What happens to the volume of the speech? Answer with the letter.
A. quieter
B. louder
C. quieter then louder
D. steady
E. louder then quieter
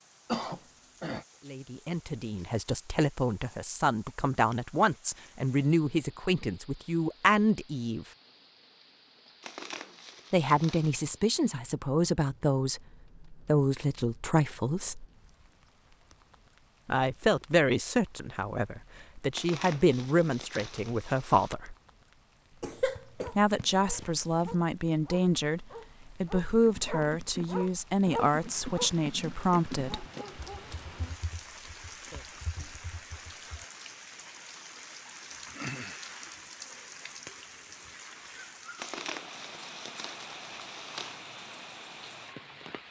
D.